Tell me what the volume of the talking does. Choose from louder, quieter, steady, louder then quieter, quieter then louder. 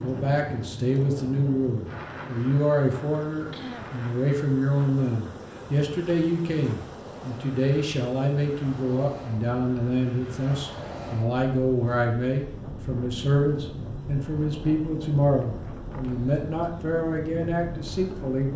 steady.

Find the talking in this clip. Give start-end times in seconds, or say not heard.
0.0-18.5.